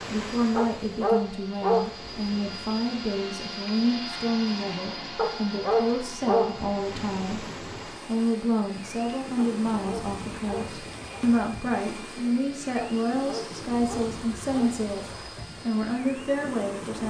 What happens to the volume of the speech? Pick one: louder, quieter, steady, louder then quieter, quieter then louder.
steady.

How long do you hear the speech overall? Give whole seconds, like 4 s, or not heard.
17 s.